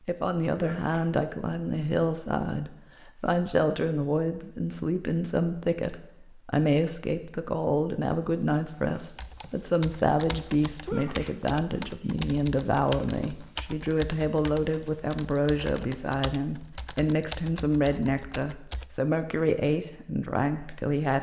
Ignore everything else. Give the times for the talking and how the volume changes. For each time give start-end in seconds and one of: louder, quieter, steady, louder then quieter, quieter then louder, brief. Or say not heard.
0.0-21.1 steady.